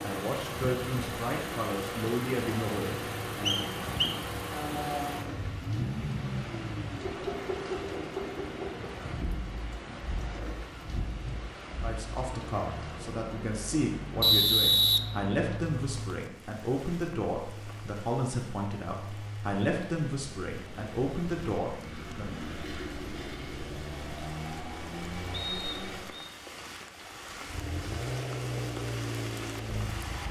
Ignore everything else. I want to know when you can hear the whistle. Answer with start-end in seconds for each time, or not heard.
3.5-4.2, 14.2-15.0, 25.3-26.3.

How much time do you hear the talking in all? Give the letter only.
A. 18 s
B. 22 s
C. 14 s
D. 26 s
C.